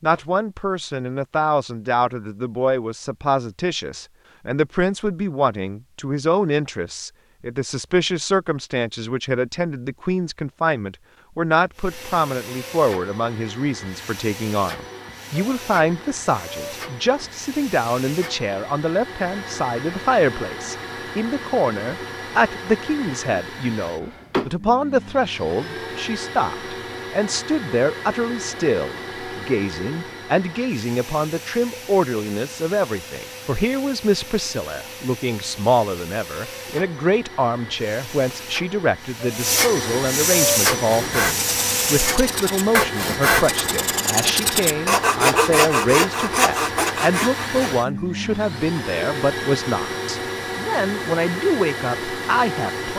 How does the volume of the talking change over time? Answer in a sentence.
The volume of the talking stays about the same.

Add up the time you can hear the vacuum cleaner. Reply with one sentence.
You can hear the vacuum cleaner for 41 seconds altogether.